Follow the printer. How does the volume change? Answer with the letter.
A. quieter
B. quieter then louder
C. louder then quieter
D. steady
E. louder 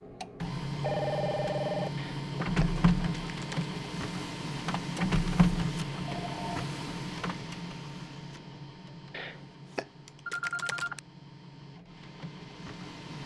A.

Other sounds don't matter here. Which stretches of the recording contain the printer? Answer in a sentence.
The printer can be heard from 0.0 to 13.2 s.